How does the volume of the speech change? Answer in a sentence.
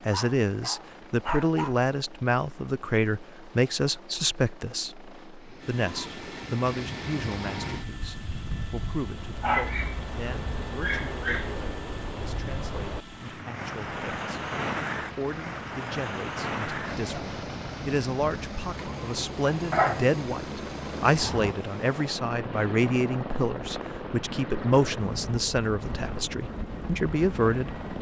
The volume of the speech goes down, then up.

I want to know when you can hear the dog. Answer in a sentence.
The dog can be heard from 0.1 to 1.8 s, from 9.4 to 11.6 s and from 19.7 to 20.1 s.